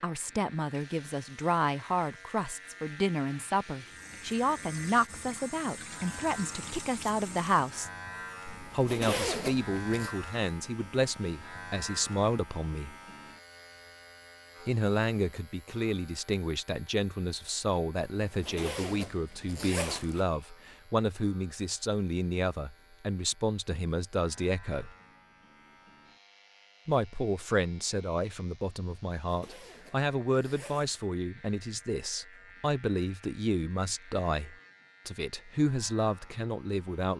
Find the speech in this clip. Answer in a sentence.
The speech can be heard from 0.0 to 7.9 s, from 8.7 to 12.9 s, from 14.7 to 24.9 s and from 26.9 to 37.1 s.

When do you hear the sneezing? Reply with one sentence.
The sneezing can't be heard in this clip.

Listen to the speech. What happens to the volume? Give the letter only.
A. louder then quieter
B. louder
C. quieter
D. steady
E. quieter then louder
D.